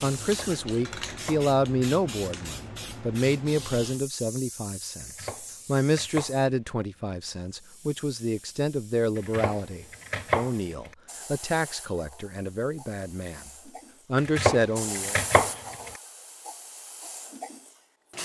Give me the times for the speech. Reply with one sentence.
You can hear the speech from 0.0 to 13.5 s and from 14.1 to 15.2 s.